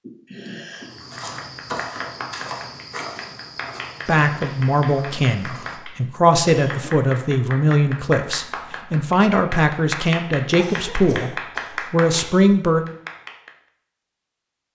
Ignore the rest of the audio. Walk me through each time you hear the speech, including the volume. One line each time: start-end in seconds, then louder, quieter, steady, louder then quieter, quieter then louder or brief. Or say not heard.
4.0-12.8 steady.